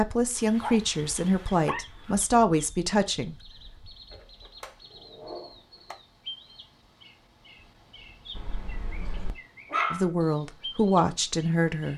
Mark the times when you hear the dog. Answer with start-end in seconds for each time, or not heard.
0.3-2.2, 4.1-6.0, 8.3-10.1.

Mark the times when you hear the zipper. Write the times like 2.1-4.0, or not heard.
not heard.